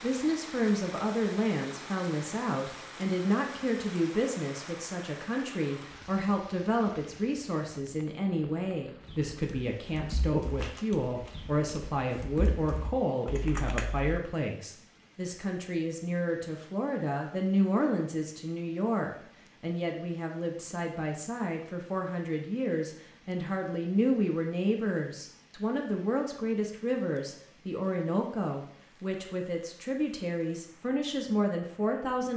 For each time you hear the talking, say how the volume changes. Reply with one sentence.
The talking can be heard from 0.0 to 32.3 s, at a steady volume.